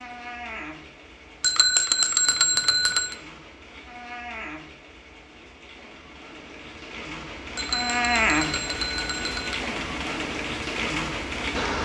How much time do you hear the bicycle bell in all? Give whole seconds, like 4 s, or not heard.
4 s.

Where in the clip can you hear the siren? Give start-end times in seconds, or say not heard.
not heard.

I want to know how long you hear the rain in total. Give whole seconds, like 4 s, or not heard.
12 s.